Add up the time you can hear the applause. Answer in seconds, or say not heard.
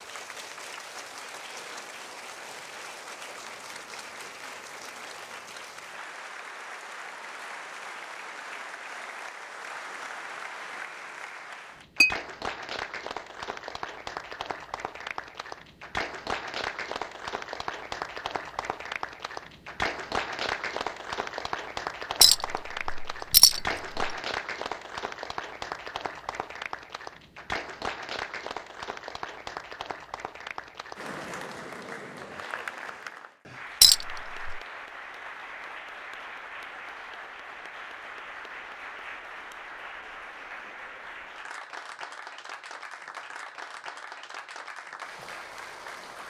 46 s.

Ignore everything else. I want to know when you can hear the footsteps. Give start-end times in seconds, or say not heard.
not heard.